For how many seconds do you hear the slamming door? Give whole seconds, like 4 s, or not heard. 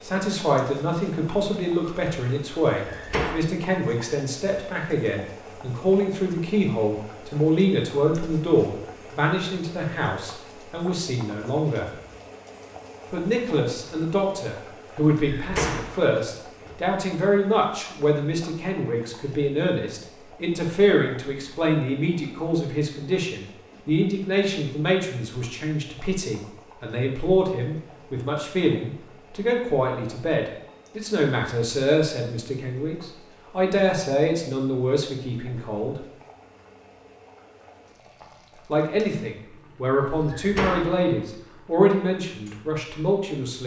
3 s.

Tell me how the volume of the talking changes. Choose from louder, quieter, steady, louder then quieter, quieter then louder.
steady.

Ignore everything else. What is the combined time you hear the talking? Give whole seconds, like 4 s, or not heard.
40 s.